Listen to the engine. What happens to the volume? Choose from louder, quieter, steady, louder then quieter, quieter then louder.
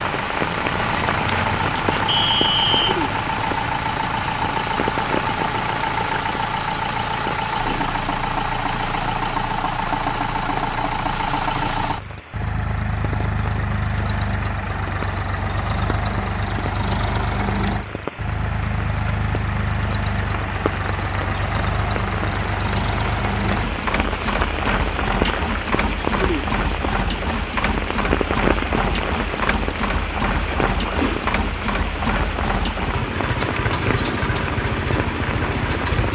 steady.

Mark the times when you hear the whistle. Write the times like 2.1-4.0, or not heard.
2.0-2.9.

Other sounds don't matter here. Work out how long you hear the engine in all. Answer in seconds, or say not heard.
36 s.